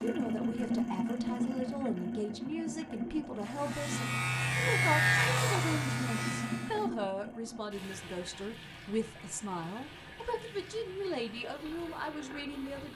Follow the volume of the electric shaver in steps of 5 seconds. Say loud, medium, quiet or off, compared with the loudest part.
loud, loud, off.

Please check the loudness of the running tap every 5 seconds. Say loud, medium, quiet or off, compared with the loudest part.
loud, medium, quiet.